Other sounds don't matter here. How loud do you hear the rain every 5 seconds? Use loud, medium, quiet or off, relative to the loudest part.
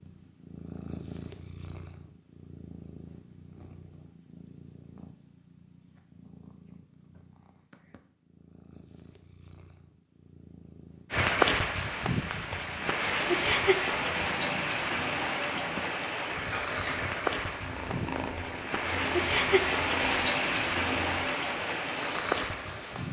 off, off, loud, loud, loud.